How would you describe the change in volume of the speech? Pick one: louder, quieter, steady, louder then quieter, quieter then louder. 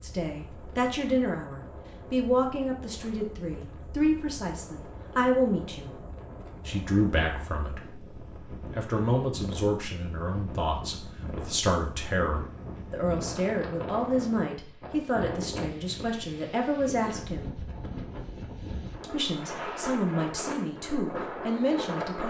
steady.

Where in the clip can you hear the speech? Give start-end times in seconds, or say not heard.
0.0-5.9, 6.7-17.6, 19.0-22.2.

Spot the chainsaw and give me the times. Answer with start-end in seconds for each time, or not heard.
not heard.